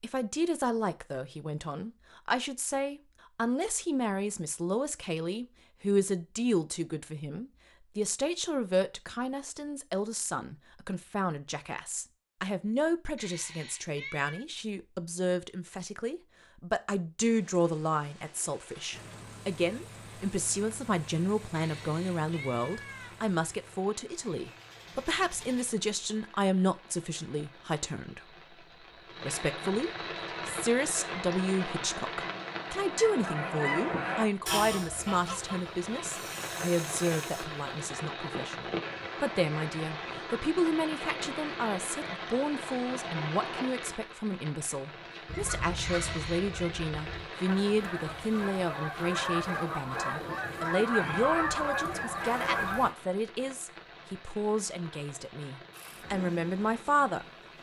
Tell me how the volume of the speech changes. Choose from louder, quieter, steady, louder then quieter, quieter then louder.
steady.